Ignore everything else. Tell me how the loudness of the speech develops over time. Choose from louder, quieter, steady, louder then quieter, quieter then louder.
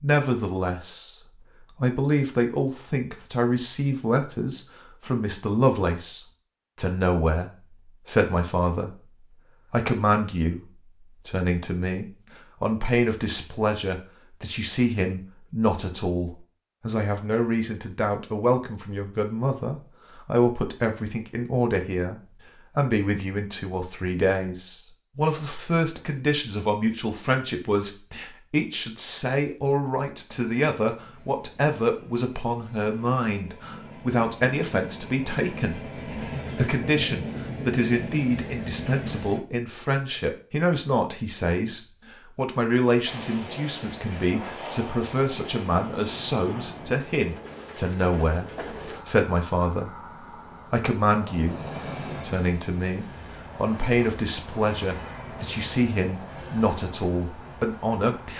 steady.